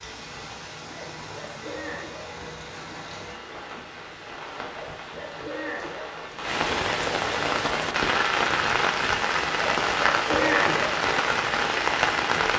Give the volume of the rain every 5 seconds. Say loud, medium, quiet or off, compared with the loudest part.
quiet, loud, loud.